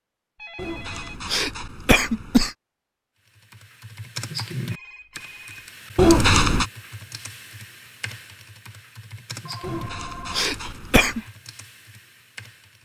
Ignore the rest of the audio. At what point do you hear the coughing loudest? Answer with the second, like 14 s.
6 s.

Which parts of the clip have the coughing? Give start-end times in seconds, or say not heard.
0.6-2.5, 6.0-6.7, 9.6-11.2.